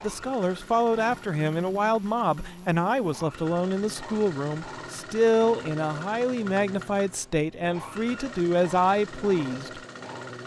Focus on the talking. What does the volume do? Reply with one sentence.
The volume of the talking stays about the same.